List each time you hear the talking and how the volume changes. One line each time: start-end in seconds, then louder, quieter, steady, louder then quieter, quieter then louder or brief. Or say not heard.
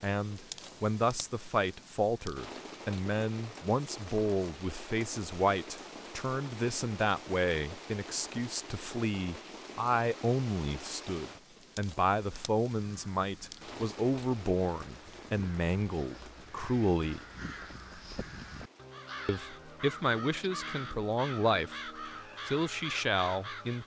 0.0-17.2 steady
19.2-21.8 brief
22.4-23.8 brief.